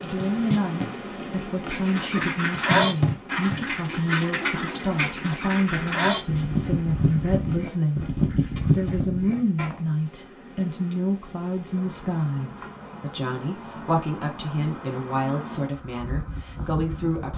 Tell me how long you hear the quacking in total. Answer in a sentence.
You can hear the quacking for 8 seconds altogether.